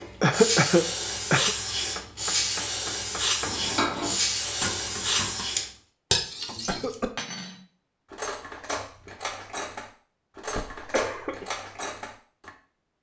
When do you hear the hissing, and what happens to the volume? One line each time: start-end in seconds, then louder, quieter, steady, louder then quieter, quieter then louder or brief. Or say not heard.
0.0-5.7 steady.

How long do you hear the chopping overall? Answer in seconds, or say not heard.
2 s.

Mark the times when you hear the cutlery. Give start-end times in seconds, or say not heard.
3.5-12.5.